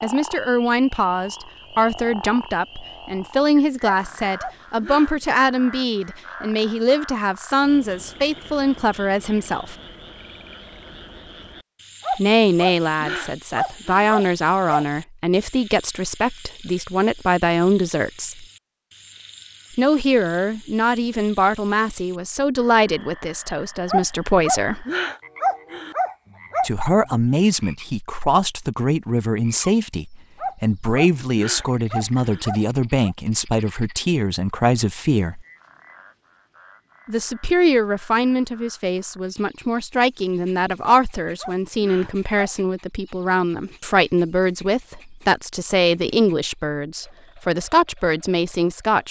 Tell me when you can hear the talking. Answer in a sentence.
You can hear the talking from 0.0 to 9.8 s, from 12.2 to 18.4 s, from 19.8 to 24.9 s, from 26.6 to 35.5 s and from 37.0 to 49.0 s.